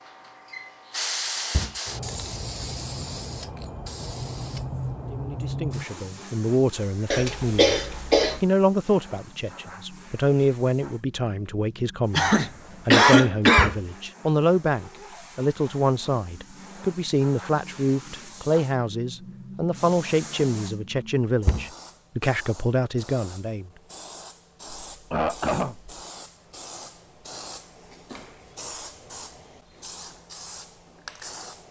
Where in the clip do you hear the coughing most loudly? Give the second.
13 s.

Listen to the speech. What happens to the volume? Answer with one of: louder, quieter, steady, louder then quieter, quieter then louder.
steady.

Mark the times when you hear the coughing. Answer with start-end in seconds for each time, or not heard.
7.1-8.4, 12.2-13.7, 24.9-26.0.